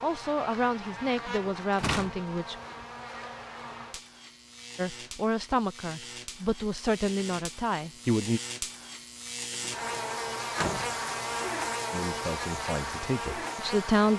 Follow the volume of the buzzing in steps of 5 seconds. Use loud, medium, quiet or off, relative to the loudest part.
medium, medium, loud.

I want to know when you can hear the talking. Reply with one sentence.
You can hear the talking from 0.0 to 2.5 s, from 4.8 to 8.4 s and from 11.9 to 14.1 s.